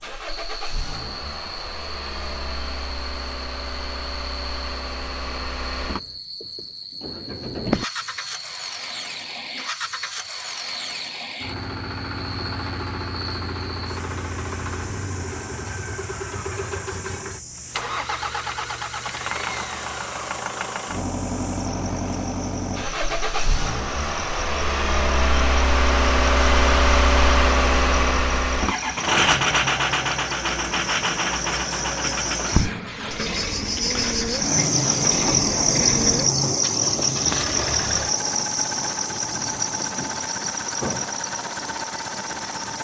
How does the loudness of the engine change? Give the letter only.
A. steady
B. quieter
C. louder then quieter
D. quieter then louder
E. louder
C.